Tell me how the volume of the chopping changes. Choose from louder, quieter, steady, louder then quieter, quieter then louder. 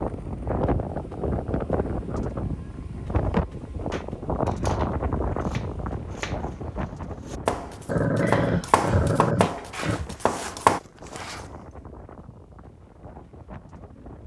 louder.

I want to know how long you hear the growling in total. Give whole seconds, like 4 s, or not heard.
2 s.